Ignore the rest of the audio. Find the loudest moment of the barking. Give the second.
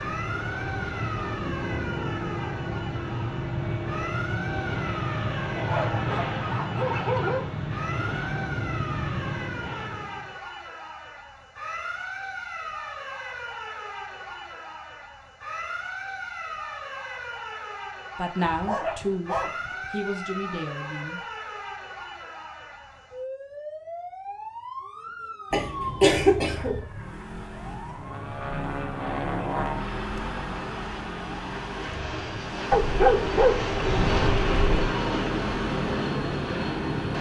33 s.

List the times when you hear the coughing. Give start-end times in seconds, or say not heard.
25.5-26.8.